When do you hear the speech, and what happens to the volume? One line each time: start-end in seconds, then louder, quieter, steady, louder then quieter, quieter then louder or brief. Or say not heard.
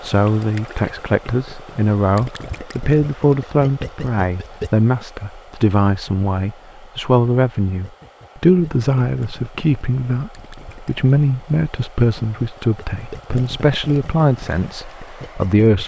0.0-15.8 steady.